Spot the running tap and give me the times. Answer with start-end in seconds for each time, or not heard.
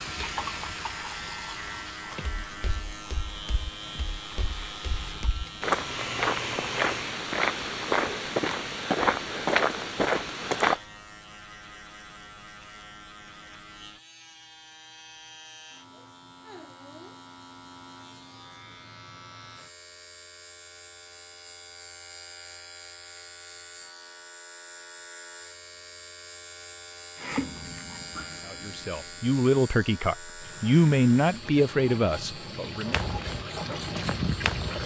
0.0-7.2, 27.1-34.8.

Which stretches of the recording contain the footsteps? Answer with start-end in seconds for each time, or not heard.
2.5-10.8, 32.9-34.8.